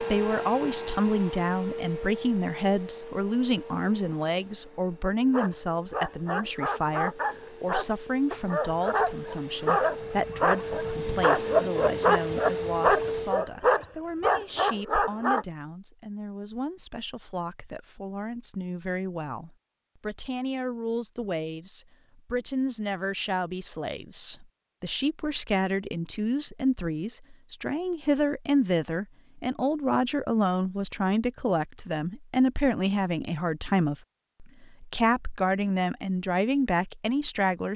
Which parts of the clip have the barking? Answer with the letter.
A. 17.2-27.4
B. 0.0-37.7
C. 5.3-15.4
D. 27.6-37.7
C.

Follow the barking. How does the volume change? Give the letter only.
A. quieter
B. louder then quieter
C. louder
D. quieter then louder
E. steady
C.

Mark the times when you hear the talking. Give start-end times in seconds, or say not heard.
0.0-37.7.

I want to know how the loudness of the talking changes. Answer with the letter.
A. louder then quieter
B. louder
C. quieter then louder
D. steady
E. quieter
C.